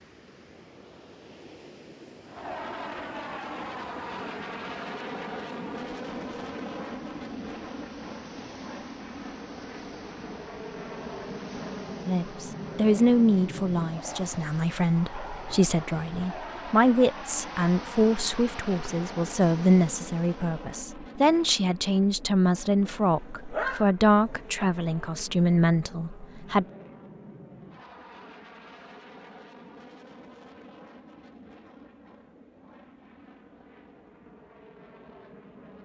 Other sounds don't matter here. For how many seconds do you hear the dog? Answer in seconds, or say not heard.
2 s.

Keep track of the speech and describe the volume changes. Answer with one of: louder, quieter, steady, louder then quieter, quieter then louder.
steady.